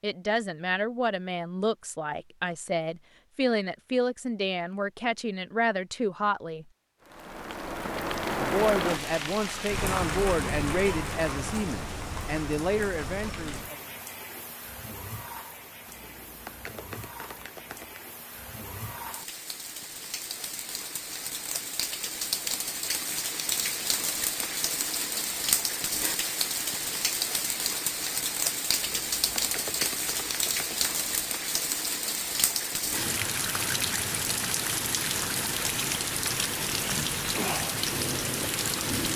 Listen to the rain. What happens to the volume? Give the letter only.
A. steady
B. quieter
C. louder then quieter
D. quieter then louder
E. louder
D.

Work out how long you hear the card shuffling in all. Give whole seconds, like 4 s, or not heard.
5 s.